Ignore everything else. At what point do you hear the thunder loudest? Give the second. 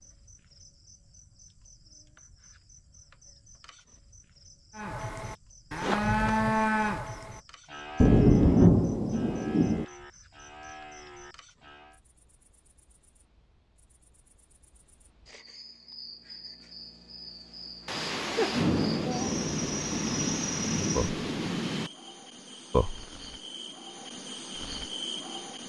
9 s.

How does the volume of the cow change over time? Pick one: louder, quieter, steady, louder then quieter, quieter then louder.
quieter.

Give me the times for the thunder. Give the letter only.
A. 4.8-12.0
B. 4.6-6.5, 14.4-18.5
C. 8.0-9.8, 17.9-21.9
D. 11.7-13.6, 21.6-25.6
C.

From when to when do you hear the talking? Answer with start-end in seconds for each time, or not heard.
not heard.